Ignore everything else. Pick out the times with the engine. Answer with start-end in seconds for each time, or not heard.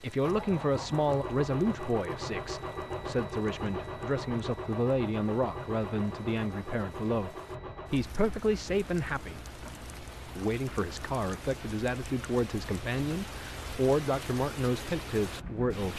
0.0-15.9.